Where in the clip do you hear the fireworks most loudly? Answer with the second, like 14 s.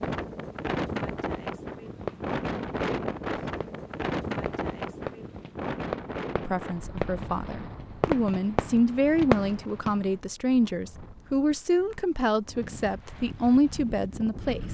9 s.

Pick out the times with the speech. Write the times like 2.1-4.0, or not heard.
6.5-14.6.